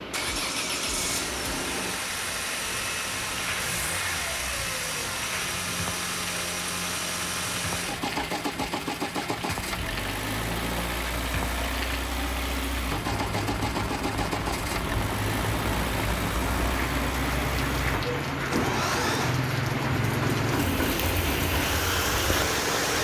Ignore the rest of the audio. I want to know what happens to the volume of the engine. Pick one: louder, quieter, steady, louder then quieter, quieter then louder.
steady.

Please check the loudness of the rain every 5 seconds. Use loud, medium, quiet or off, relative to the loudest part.
medium, medium, medium, loud, loud.